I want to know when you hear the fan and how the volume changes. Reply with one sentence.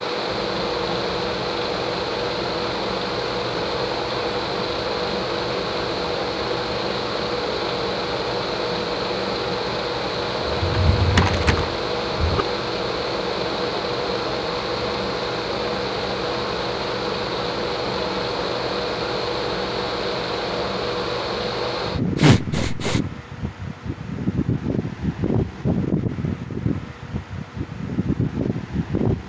You can hear the fan from 0.0 to 29.2 s, at a steady volume.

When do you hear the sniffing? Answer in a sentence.
The sniffing can be heard from 22.1 to 23.0 s.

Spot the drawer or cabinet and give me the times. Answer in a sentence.
The drawer or cabinet can be heard from 10.5 to 12.4 s.